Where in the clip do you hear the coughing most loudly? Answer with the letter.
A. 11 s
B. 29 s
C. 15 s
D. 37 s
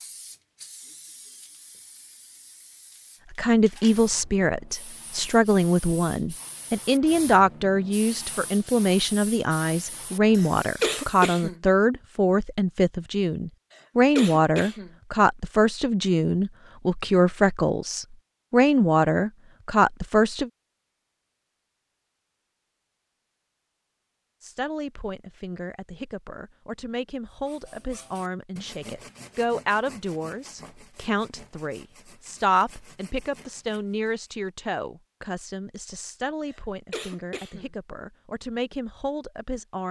A.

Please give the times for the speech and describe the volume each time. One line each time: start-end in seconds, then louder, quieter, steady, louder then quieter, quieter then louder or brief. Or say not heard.
3.3-20.5 steady
24.4-39.8 louder then quieter.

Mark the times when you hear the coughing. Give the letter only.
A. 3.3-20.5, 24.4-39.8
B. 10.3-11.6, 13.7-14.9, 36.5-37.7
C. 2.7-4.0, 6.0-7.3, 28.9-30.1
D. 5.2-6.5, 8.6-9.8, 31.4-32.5
B.